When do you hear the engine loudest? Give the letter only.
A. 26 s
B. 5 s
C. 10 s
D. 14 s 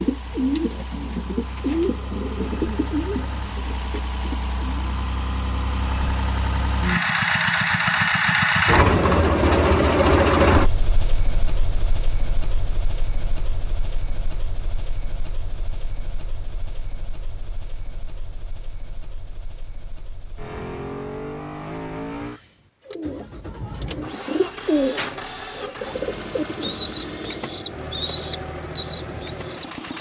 C.